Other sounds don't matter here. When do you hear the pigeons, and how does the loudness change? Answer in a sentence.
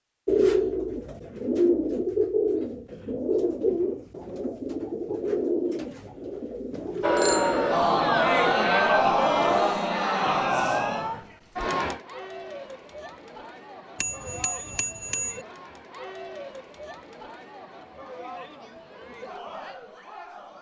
You can hear the pigeons from 0.2 to 9.7 s, getting quieter.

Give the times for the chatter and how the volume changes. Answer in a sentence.
You can hear the chatter from 7.0 to 20.5 s, getting quieter.